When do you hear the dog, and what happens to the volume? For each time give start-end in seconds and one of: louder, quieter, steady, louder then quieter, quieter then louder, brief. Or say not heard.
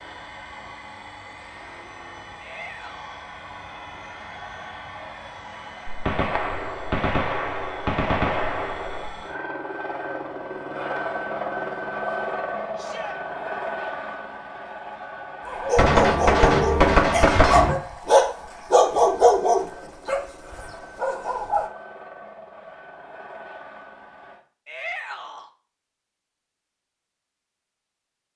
15.4-20.2 louder
21.0-21.7 brief.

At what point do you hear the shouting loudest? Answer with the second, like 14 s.
25 s.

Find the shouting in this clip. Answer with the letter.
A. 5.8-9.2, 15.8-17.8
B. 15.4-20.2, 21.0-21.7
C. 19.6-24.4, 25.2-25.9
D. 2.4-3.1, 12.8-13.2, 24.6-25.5
D.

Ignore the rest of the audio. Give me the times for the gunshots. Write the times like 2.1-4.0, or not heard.
5.8-9.2, 15.8-17.8.